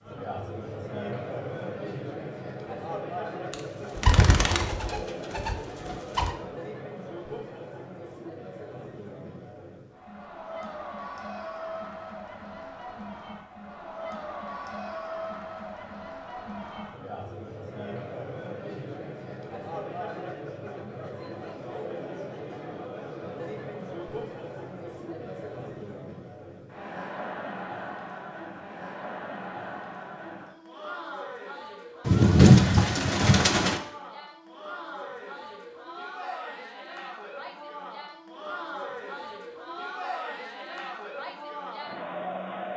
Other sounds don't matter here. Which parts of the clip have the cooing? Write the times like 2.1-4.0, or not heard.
3.5-6.3, 32.0-33.8.